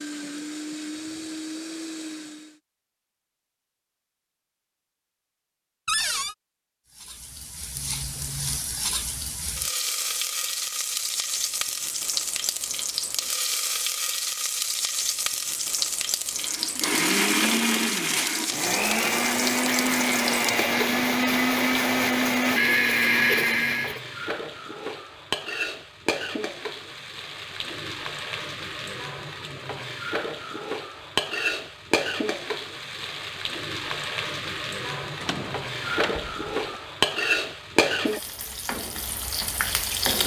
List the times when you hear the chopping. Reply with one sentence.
The chopping can't be heard in this clip.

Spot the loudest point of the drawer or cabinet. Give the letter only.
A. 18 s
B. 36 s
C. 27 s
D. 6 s
D.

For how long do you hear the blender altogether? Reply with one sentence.
You can hear the blender for 10 seconds altogether.